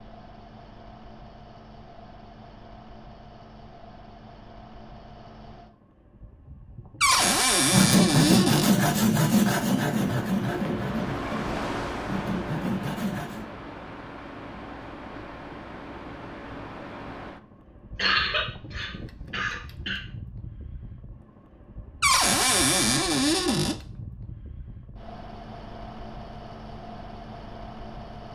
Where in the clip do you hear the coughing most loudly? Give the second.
18 s.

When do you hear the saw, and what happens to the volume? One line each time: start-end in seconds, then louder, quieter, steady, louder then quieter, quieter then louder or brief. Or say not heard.
7.1-13.4 quieter.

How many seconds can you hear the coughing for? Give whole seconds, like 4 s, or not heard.
2 s.